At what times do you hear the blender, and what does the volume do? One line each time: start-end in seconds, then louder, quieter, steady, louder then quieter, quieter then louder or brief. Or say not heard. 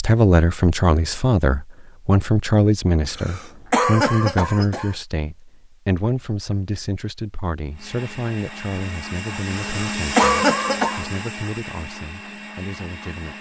7.7-13.3 louder then quieter.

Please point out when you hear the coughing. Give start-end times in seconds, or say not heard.
3.0-5.0, 9.5-11.1.